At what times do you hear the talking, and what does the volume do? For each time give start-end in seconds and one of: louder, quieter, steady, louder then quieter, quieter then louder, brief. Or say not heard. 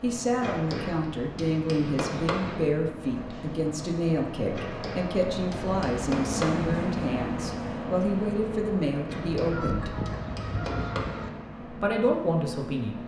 0.0-10.1 steady
11.6-13.0 brief.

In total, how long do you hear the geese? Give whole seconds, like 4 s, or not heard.
2 s.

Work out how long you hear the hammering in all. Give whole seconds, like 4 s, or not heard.
7 s.